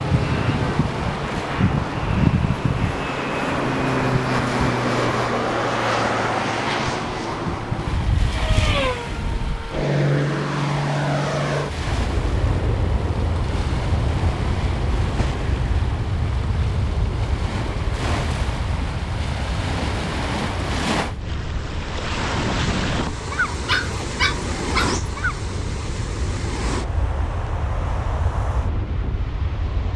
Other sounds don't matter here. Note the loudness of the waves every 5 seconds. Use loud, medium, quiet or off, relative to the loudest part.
medium, medium, medium, medium, loud, medium.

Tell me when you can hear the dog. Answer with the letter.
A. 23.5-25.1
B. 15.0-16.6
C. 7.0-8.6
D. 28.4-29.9
A.